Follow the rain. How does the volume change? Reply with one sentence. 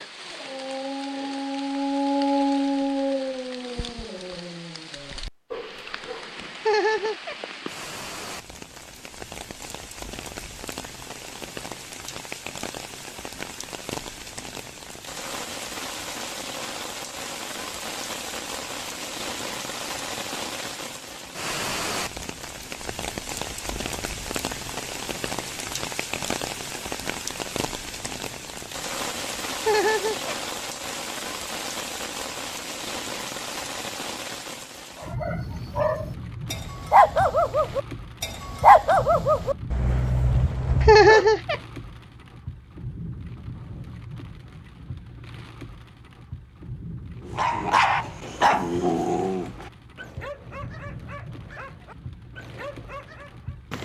The loudness of the rain goes up, then down.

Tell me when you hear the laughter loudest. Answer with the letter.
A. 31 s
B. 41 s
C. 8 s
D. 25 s
B.